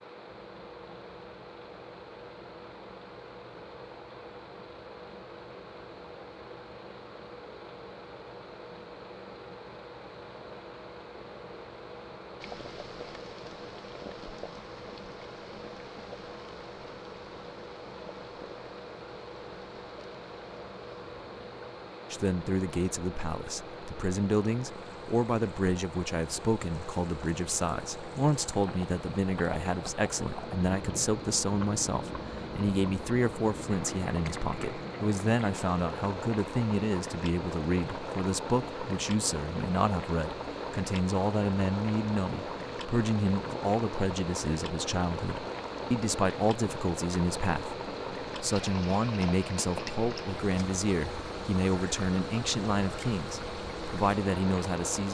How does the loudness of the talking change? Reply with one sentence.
The volume of the talking stays about the same.